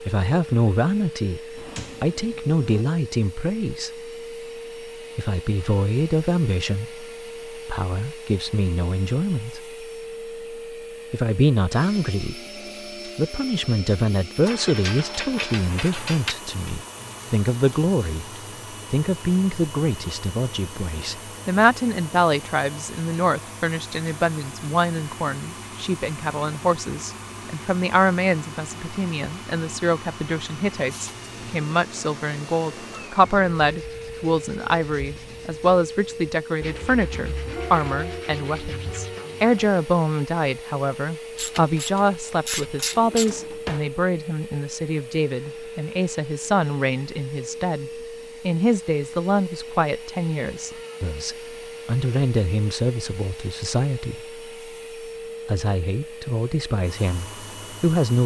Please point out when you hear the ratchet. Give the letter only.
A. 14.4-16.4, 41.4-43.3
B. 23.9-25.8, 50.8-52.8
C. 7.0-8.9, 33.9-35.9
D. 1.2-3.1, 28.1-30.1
A.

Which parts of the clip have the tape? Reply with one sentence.
The tape can't be heard in this clip.